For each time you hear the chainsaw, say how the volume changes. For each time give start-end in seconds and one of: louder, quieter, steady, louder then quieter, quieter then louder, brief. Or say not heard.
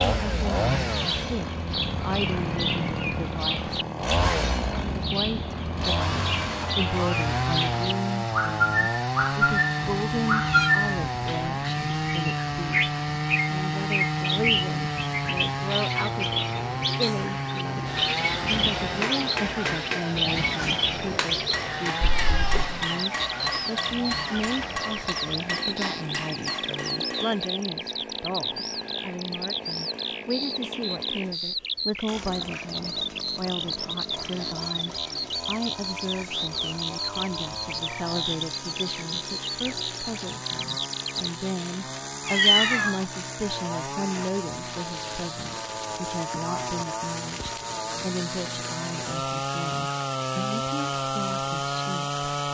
0.0-52.4 quieter then louder.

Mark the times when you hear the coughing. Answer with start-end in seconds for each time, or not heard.
not heard.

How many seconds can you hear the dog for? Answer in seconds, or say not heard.
not heard.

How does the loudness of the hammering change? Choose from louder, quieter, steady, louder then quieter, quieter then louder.
steady.